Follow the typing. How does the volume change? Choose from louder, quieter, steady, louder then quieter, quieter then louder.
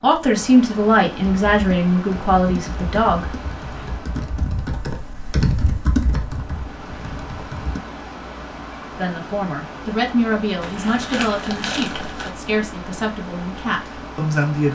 louder then quieter.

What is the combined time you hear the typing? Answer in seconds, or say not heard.
6 s.